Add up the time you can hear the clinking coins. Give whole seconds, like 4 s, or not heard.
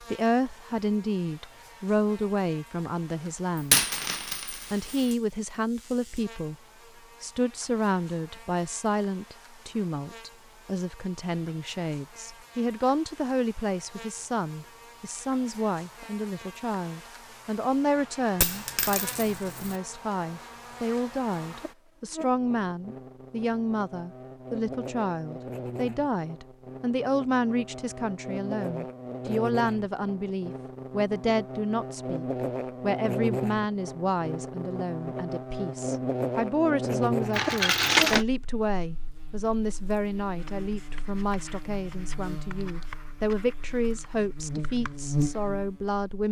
4 s.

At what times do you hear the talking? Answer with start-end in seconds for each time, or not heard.
0.0-3.9, 4.5-6.5, 7.2-46.2.